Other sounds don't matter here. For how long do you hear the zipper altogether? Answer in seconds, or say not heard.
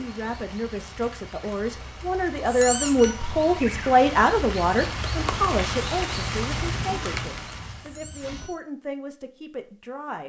2 s.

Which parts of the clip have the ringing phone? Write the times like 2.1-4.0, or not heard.
not heard.